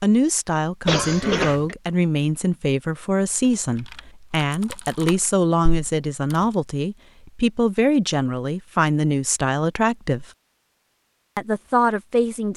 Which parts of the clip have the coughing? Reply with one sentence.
The coughing can be heard from 0.8 to 1.8 s.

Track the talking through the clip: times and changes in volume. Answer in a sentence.
The talking can be heard from 0.0 to 10.2 s, at a steady volume; and briefly from 11.3 to 12.5 s.